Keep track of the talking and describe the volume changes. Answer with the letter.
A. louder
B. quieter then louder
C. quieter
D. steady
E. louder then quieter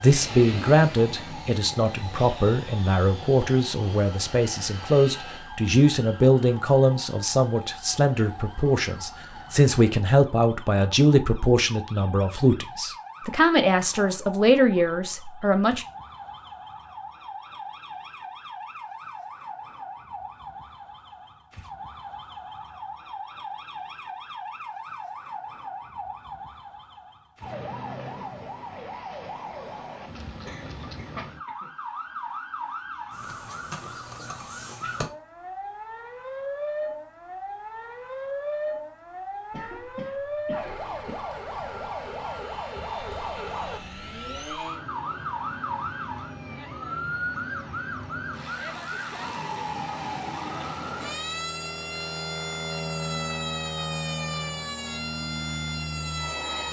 D.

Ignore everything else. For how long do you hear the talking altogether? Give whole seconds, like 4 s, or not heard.
16 s.